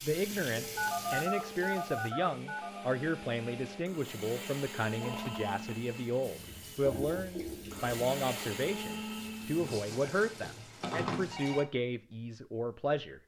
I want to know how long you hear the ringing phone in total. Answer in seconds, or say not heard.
5 s.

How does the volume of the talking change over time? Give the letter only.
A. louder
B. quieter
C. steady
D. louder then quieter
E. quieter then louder
C.